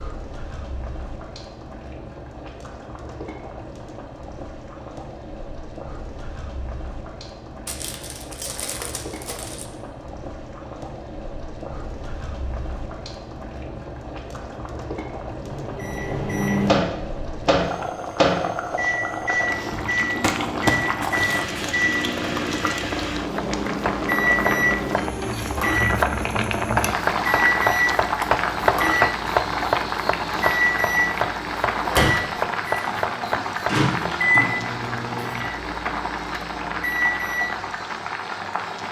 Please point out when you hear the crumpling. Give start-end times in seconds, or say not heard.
7.7-9.7, 20.2-21.6.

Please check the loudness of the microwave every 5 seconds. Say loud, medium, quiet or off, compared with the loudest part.
off, off, off, loud, loud, loud, loud, medium.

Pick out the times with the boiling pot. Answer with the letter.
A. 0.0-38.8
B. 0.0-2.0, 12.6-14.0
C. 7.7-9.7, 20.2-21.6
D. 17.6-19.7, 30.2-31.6
A.